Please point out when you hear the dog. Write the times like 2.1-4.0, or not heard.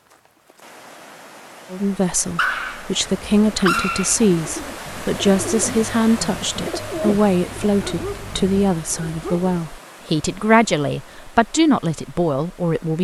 2.4-4.2, 7.8-9.6.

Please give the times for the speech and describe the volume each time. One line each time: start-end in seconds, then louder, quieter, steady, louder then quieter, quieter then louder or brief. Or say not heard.
1.7-13.0 steady.